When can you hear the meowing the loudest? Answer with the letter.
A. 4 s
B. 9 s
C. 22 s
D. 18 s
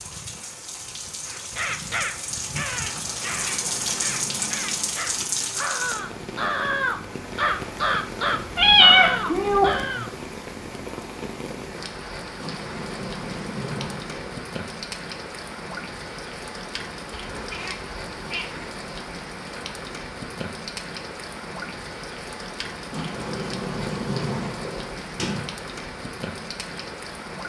B.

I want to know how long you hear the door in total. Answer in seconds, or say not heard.
7 s.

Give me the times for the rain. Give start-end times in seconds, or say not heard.
0.0-27.4.